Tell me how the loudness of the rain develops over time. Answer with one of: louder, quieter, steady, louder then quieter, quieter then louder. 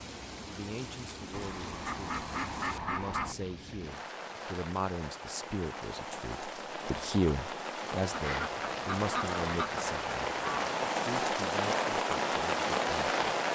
louder.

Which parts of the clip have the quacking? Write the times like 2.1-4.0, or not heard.
1.3-3.4, 8.1-10.8.